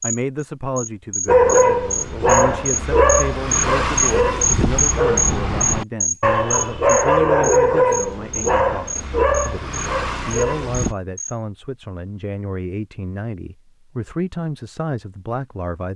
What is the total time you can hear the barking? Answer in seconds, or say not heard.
10 s.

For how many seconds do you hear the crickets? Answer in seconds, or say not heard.
11 s.